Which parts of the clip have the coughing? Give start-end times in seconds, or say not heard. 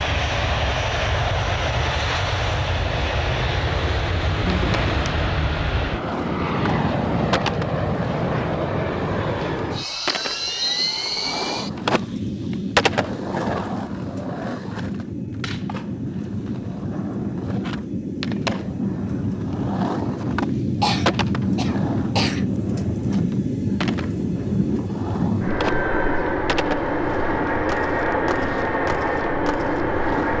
4.5-5.2, 20.8-22.4.